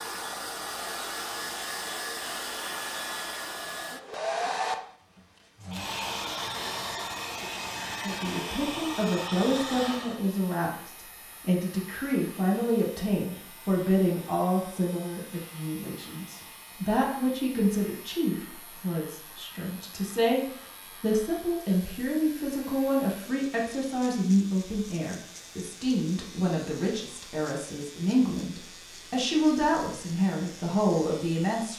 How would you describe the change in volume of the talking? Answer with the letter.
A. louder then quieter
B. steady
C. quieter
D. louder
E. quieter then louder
B.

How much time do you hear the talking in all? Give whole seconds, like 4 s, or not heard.
24 s.